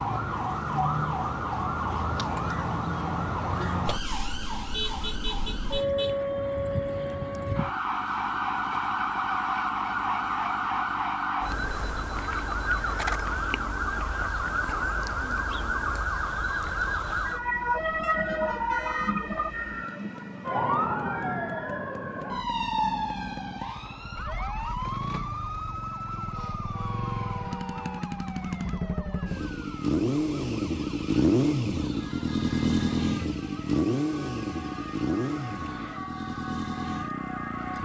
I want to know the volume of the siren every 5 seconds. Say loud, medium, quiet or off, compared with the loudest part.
loud, loud, loud, loud, loud, medium, quiet, medium.